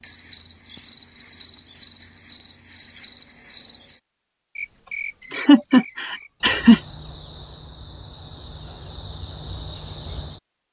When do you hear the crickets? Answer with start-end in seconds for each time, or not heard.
0.0-10.4.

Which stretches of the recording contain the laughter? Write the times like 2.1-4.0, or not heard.
4.8-6.8.